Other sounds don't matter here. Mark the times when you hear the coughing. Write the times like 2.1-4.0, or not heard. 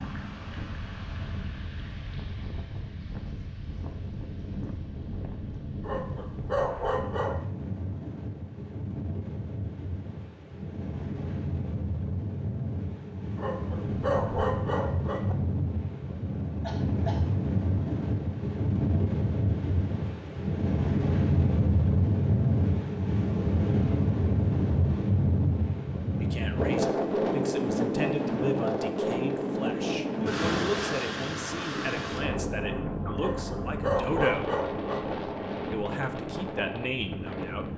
16.6-17.2.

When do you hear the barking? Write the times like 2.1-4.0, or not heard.
5.8-7.5, 13.3-15.3, 33.1-35.1.